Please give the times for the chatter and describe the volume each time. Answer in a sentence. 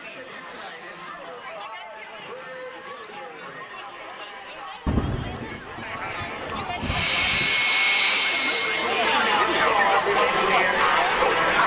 The chatter can be heard from 0.0 to 11.6 s, getting louder.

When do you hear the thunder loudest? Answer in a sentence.
The loudest moment of the thunder is at 5 seconds.